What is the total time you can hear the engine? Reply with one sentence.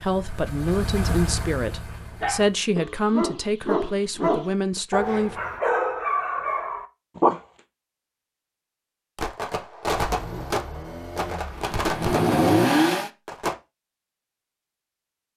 You can hear the engine for 6 seconds altogether.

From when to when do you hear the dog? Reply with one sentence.
The dog can be heard from 1.8 to 7.4 s.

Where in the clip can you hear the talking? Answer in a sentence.
The talking can be heard from 0.0 to 5.4 s.